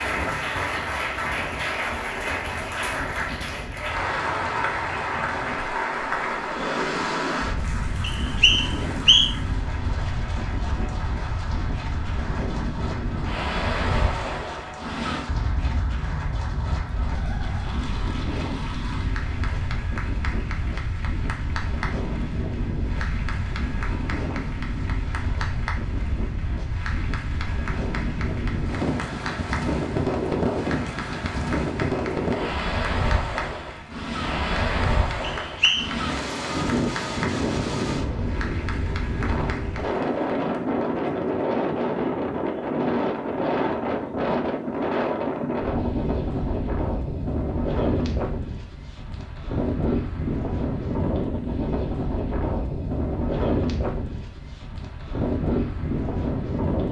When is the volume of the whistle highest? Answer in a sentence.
The volume of the whistle peaks at 9 seconds.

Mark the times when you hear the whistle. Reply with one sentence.
The whistle can be heard from 8.0 to 9.3 s and from 35.4 to 36.0 s.